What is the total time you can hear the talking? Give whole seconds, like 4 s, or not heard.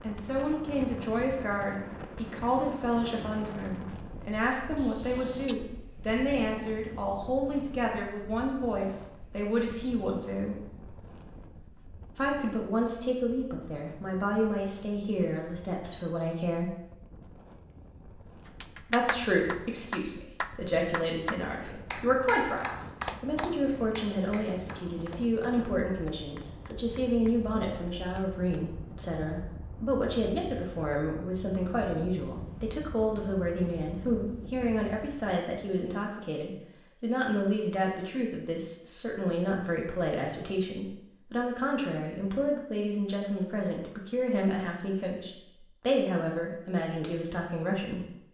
44 s.